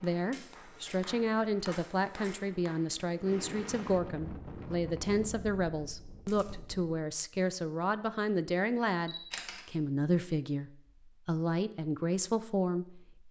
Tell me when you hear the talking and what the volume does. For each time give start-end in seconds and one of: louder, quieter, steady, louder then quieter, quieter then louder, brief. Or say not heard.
0.0-13.2 steady.